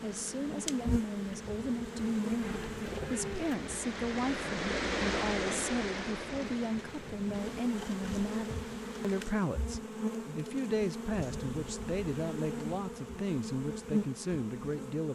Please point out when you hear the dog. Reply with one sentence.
The dog can't be heard in this clip.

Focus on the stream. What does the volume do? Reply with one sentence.
The volume of the stream goes up, then down.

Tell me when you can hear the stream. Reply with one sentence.
The stream can be heard from 0.0 to 9.4 s.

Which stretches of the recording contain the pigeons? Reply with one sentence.
You can hear the pigeons from 2.4 to 3.5 s.